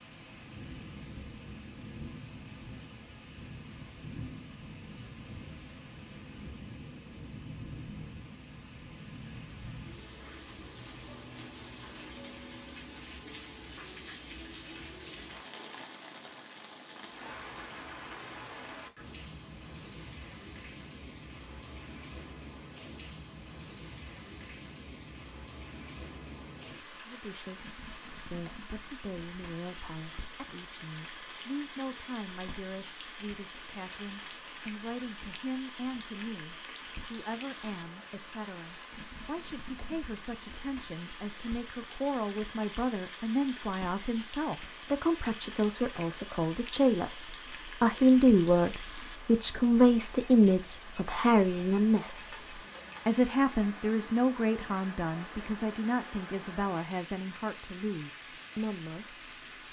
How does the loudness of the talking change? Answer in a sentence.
The loudness of the talking goes up, then down.